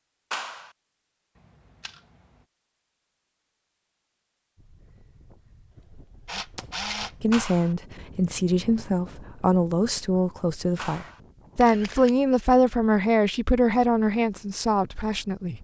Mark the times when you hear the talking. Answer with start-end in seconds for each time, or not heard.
7.2-15.5.